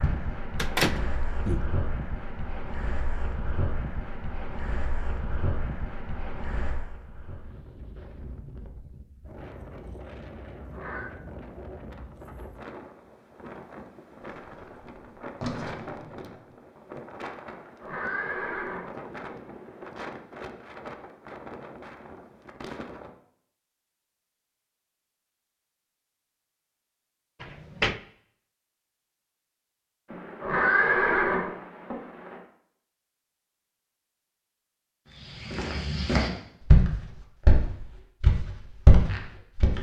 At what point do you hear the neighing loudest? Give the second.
31 s.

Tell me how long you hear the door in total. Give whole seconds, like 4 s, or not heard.
4 s.